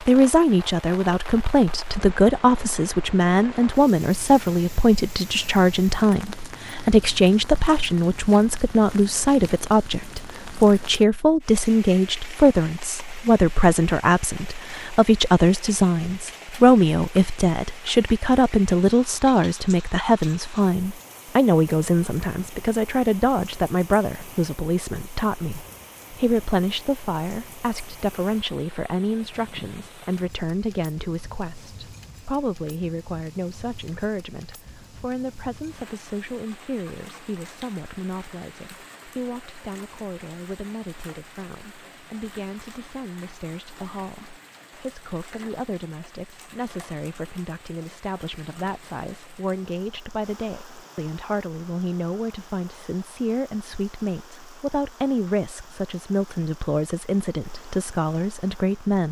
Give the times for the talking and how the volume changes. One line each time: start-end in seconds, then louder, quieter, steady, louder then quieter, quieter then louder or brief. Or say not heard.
0.0-59.0 quieter then louder.